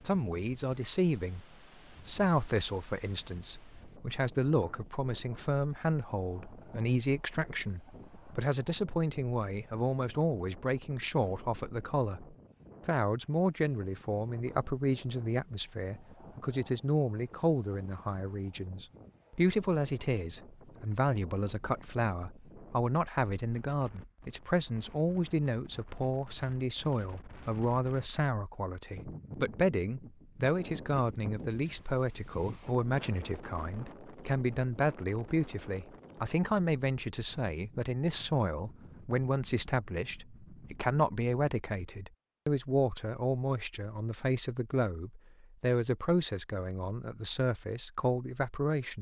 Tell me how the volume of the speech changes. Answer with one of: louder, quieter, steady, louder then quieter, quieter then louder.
steady.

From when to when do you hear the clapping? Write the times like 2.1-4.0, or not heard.
not heard.